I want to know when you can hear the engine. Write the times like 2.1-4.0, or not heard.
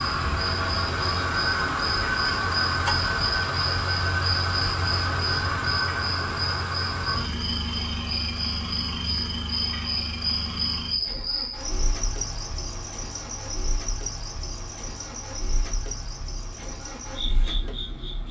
0.0-18.2.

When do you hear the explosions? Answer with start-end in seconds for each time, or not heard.
not heard.